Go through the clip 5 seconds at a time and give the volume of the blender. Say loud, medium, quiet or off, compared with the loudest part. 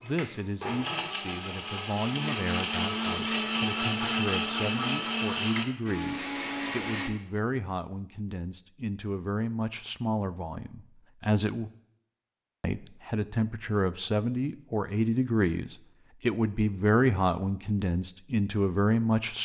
loud, loud, off, off.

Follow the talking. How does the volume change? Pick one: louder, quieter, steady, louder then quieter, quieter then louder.
louder.